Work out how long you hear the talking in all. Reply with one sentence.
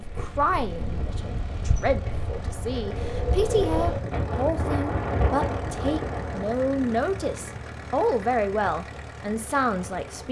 You can hear the talking for 10 seconds altogether.